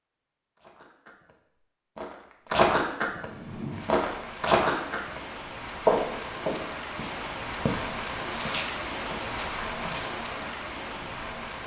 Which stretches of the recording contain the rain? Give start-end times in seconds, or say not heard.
3.1-11.6.